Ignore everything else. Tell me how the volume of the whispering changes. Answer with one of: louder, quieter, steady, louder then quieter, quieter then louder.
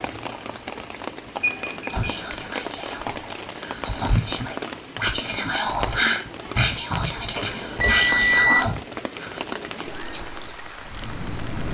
louder then quieter.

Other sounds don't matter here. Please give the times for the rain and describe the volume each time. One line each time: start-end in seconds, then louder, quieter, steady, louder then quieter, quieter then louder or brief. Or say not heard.
0.0-11.6 steady.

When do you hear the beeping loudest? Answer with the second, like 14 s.
8 s.